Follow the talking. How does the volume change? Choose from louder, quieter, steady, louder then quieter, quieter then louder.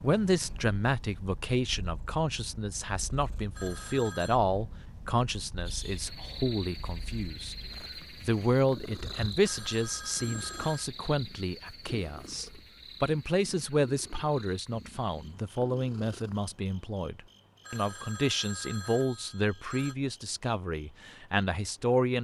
steady.